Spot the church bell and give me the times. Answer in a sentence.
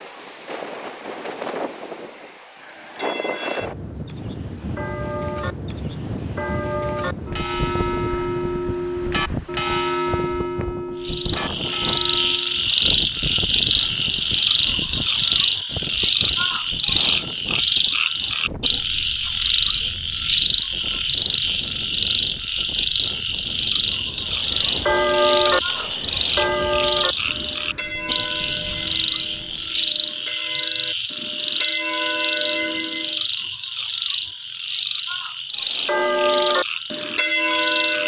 You can hear the church bell from 2.6 to 12.7 s, from 24.2 to 33.2 s and from 35.7 to 38.0 s.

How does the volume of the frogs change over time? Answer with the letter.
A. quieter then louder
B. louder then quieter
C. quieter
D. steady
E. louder
C.